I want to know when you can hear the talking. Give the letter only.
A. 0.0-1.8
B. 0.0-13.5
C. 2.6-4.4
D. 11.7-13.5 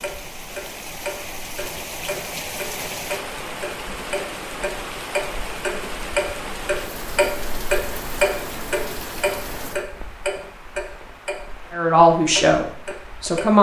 D.